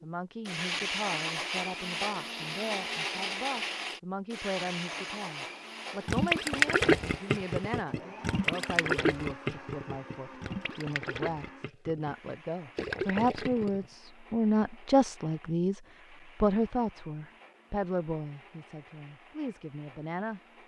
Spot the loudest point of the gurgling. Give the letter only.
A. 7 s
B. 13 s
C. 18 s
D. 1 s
A.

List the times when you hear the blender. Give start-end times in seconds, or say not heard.
0.0-20.6.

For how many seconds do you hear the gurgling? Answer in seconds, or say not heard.
8 s.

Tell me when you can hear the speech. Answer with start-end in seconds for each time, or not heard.
0.0-20.4.